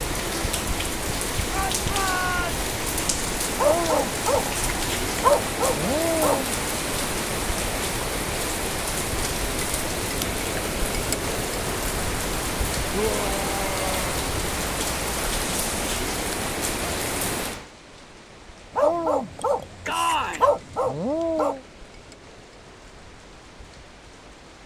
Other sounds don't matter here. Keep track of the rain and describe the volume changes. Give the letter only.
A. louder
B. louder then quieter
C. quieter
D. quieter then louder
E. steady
C.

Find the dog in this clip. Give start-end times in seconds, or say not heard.
3.5-6.5, 18.8-21.6.